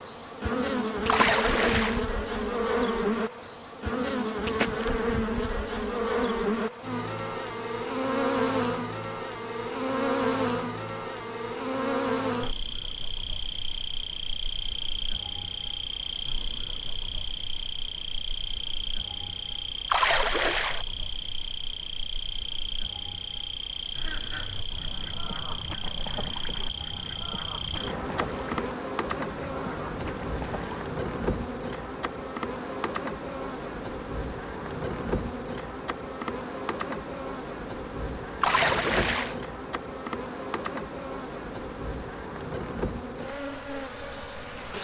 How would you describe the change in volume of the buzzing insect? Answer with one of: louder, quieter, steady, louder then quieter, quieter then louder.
quieter.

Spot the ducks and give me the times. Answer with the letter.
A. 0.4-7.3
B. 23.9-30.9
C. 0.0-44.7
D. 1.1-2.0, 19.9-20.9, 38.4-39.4
B.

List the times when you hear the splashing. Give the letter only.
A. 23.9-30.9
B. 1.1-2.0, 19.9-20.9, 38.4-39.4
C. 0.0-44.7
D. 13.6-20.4
B.